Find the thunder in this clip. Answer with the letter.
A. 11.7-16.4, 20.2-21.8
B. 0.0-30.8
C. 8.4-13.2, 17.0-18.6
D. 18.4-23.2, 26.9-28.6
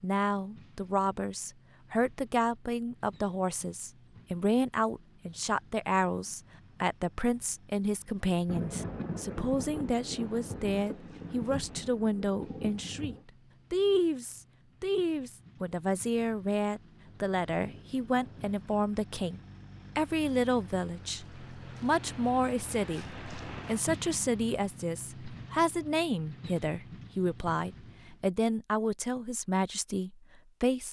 C.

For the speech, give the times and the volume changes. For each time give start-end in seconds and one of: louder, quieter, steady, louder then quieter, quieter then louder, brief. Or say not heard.
0.0-30.8 steady.